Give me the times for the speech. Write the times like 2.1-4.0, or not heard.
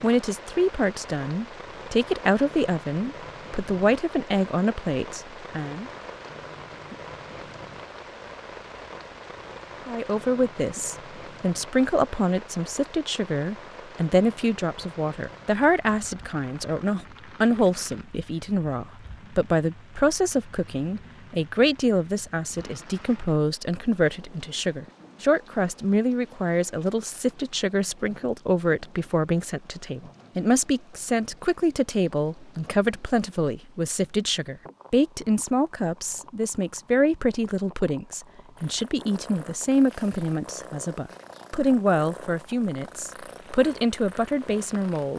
0.0-5.9, 9.8-45.1.